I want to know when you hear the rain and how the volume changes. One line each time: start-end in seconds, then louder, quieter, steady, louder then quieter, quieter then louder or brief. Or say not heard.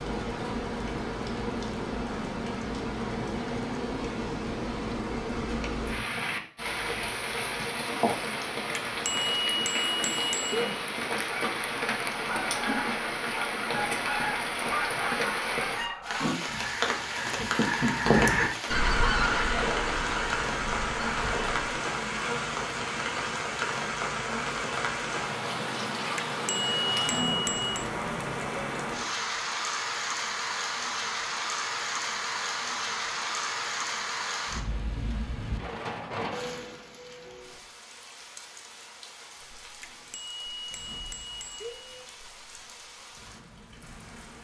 0.0-44.4 quieter.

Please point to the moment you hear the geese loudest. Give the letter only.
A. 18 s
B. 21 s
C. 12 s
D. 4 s
A.